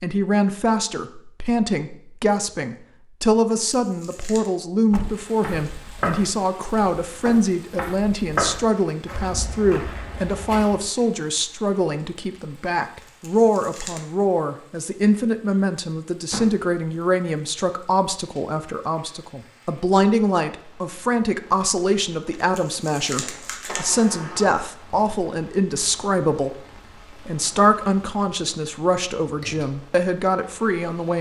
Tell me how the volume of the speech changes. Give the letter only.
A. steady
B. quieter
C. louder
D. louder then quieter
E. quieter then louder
A.